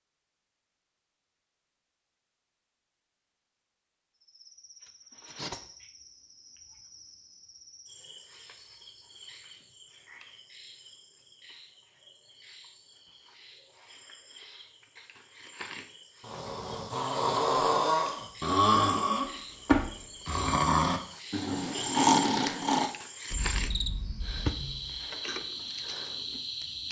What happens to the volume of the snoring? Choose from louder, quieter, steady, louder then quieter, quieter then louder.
quieter.